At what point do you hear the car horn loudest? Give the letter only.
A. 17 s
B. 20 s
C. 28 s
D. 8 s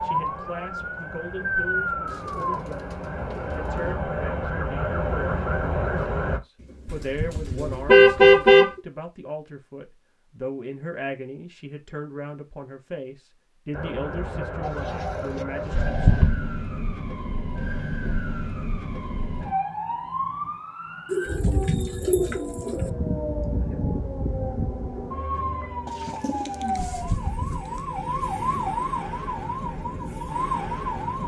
D.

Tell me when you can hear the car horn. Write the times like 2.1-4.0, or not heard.
7.1-8.7, 15.7-16.4, 26.9-27.6.